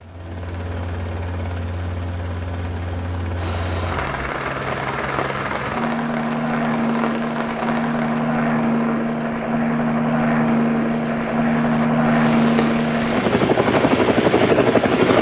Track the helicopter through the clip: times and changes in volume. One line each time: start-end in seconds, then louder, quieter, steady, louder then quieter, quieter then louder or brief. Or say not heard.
0.0-15.1 louder.